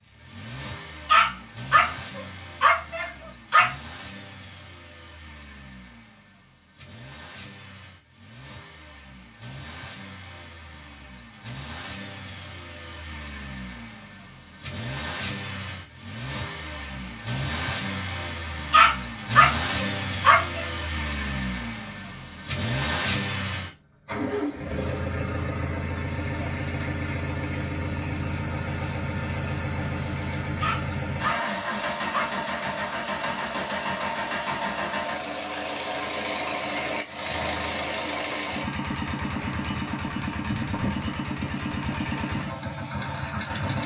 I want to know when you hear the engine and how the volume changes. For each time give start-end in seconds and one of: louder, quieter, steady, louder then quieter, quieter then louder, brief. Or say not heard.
0.0-43.8 louder.